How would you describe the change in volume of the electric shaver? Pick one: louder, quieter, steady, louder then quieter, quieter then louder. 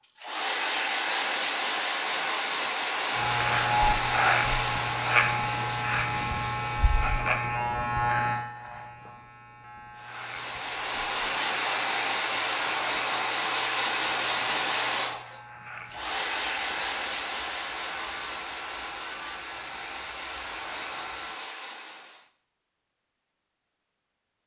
quieter.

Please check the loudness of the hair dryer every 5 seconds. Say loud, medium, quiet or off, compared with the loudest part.
loud, medium, loud, medium, medium.